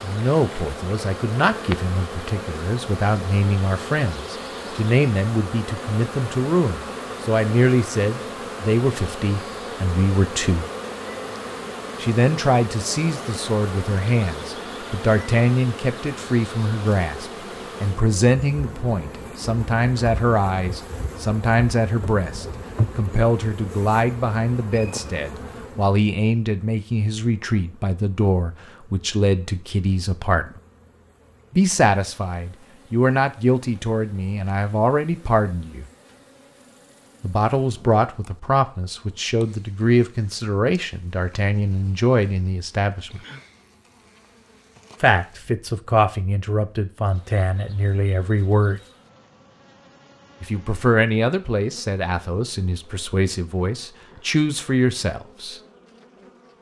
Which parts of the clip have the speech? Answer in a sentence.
The speech can be heard from 0.0 to 10.7 s, from 12.0 to 30.6 s, from 31.5 to 35.9 s, from 37.2 to 43.2 s, from 45.0 to 48.8 s and from 50.4 to 55.6 s.